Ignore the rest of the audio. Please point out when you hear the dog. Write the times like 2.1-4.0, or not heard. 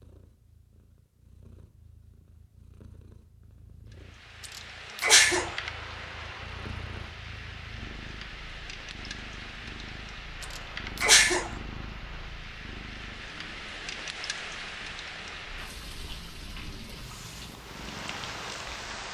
not heard.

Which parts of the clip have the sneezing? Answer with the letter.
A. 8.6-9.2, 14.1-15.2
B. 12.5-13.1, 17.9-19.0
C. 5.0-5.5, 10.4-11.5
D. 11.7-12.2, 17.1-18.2
C.